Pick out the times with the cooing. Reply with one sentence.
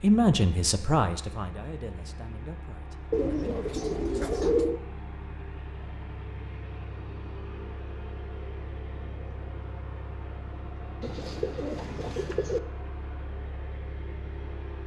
You can hear the cooing from 3.1 to 4.8 s and from 11.0 to 12.6 s.